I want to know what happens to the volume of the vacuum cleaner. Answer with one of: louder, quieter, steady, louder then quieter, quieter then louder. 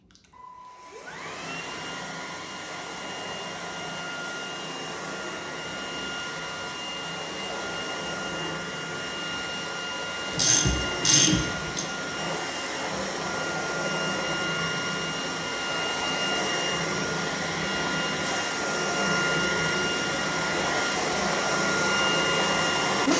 louder.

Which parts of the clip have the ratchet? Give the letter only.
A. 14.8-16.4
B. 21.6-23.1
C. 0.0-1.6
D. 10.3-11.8
D.